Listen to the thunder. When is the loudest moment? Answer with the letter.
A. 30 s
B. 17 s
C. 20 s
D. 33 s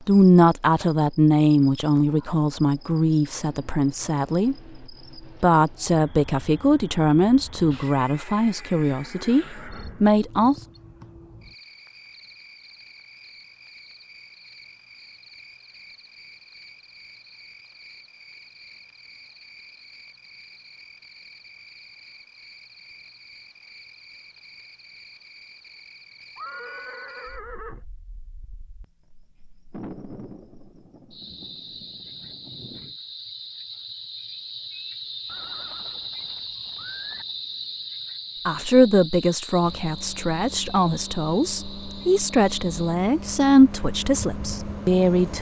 A.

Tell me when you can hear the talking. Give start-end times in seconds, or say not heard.
0.1-4.5, 5.4-10.6, 38.5-45.3.